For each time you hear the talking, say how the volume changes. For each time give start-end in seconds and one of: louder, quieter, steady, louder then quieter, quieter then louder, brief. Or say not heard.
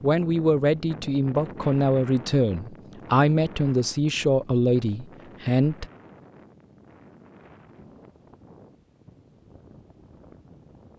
0.0-5.8 steady.